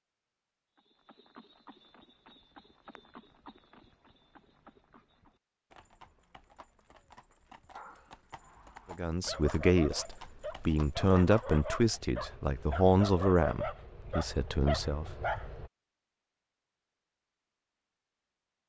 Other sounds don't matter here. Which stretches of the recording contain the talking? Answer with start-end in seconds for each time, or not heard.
8.9-15.1.